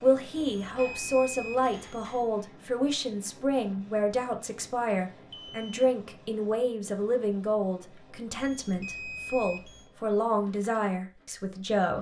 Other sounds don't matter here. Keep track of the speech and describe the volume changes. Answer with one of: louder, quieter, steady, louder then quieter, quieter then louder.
steady.